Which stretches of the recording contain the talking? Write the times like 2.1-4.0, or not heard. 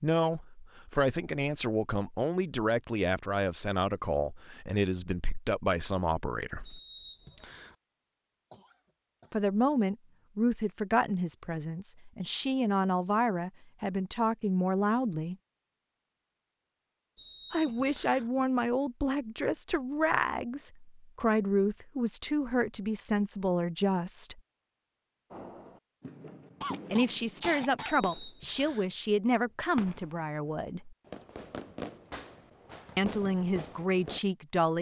0.0-6.8, 9.3-15.3, 17.5-24.4, 26.9-30.9, 33.0-34.7.